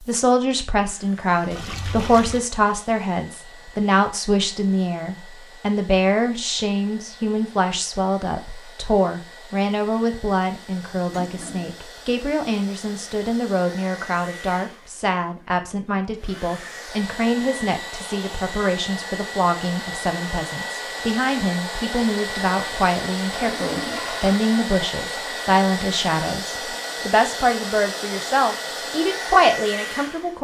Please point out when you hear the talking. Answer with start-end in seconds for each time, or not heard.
0.0-30.3.